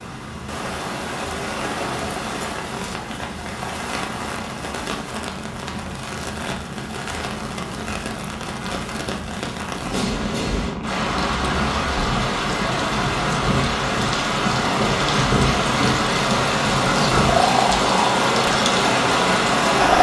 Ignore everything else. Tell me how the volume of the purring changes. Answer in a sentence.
The loudness of the purring goes up.